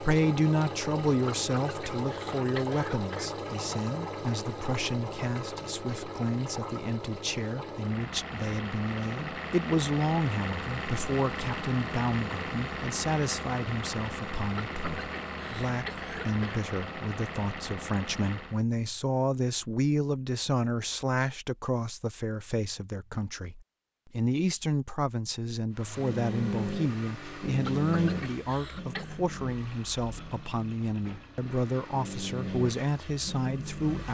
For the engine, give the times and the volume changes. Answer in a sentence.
The engine can be heard from 0.0 to 18.6 s, at a steady volume; and from 25.7 to 34.0 s, getting quieter then louder.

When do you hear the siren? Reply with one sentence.
You can't hear the siren here.